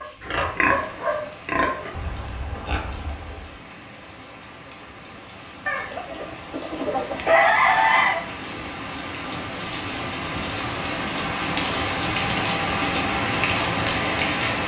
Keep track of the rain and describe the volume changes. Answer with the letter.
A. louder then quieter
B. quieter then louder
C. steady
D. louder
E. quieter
D.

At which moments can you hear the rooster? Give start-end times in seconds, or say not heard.
5.7-8.2.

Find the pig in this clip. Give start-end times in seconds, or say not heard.
0.0-3.6.